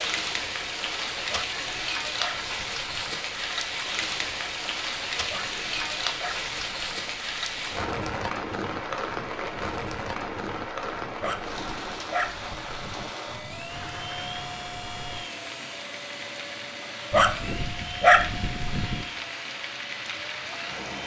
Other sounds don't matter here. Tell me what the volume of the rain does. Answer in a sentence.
The volume of the rain goes down.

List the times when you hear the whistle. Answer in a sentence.
The whistle can't be heard in this clip.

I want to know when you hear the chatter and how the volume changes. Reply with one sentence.
You can't hear the chatter here.